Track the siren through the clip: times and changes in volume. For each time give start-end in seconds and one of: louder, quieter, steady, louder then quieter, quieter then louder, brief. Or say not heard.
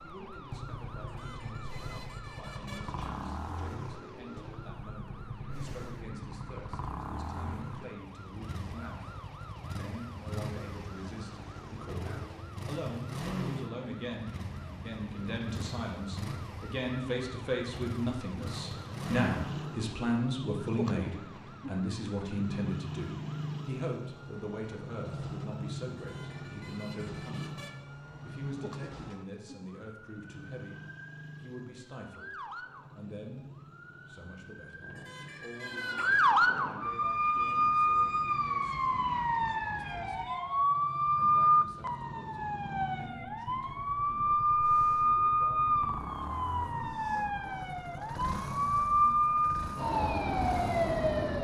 0.0-51.3 louder.